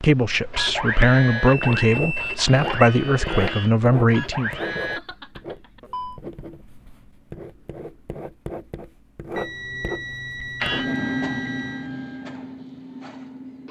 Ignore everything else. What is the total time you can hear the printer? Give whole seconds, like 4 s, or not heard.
8 s.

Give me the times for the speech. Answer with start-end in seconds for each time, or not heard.
0.0-4.5.